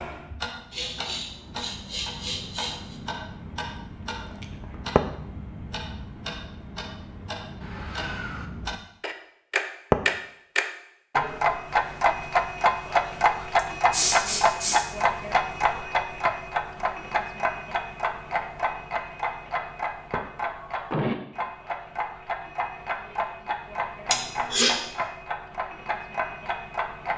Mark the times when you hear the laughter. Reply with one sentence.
The laughter can't be heard in this clip.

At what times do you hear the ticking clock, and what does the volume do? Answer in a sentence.
You can hear the ticking clock from 0.0 to 27.1 s, getting louder then quieter.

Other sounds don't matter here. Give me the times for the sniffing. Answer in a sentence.
The sniffing can be heard from 0.7 to 3.0 s, from 13.6 to 14.8 s and from 24.1 to 24.8 s.